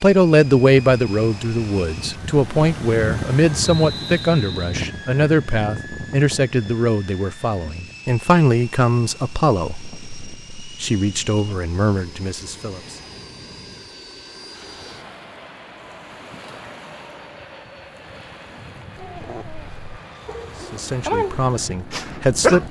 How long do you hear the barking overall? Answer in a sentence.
You can hear the barking for 4 seconds altogether.